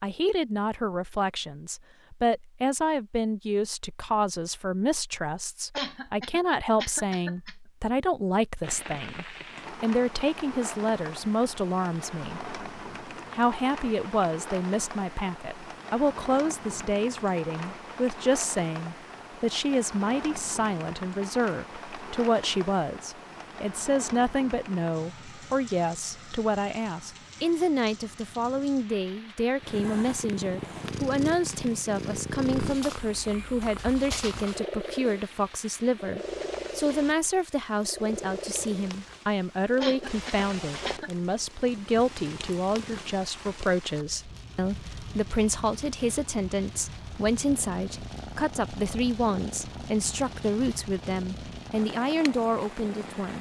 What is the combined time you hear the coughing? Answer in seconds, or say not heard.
3 s.